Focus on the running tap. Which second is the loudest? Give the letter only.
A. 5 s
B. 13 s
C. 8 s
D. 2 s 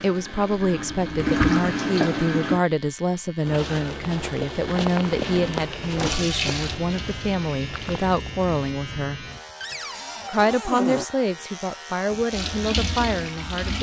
D.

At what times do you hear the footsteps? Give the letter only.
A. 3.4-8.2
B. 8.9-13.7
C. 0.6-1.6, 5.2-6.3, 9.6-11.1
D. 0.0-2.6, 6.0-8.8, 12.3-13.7
A.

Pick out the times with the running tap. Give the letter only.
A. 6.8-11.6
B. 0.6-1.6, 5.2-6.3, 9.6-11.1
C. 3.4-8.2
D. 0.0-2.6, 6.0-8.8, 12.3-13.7
D.